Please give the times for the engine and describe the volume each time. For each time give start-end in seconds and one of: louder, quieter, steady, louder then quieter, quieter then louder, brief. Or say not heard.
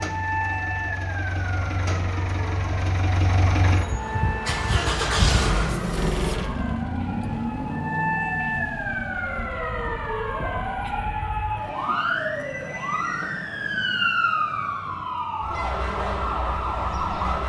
0.0-11.1 louder then quieter.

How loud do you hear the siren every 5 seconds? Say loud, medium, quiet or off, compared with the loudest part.
medium, loud, loud, loud.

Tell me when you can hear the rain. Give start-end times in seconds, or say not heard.
not heard.